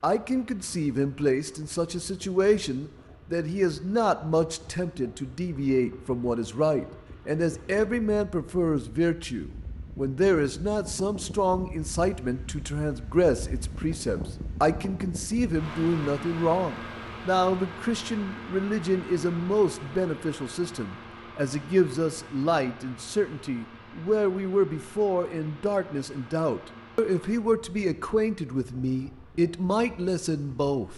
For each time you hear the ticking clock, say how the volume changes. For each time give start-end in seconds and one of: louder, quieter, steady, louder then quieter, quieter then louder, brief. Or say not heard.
not heard.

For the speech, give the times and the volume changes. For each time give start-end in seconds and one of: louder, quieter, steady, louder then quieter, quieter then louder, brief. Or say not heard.
0.0-30.9 steady.